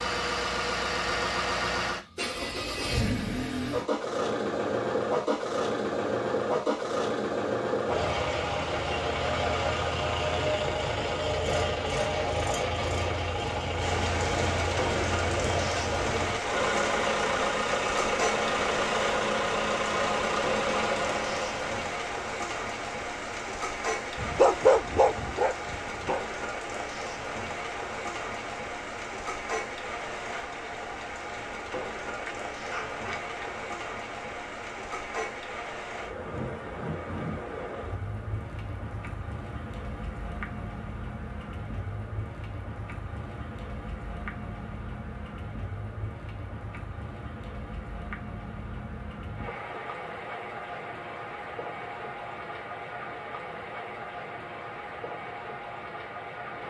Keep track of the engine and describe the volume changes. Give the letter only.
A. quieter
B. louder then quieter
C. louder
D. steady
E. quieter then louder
D.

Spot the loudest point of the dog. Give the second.
25 s.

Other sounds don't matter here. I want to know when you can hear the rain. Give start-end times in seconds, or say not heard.
13.8-56.6.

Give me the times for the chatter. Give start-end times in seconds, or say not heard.
not heard.